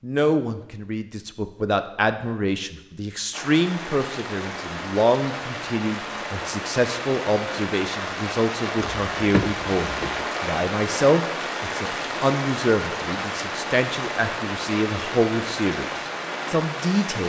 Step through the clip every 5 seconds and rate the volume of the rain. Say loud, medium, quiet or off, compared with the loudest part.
medium, loud, loud, loud.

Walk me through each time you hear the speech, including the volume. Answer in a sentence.
You can hear the speech from 0.0 to 17.2 s, at a steady volume.